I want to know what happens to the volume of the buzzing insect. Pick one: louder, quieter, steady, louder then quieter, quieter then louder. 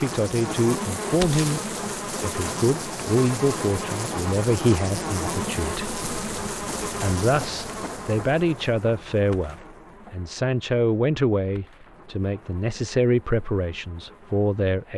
quieter.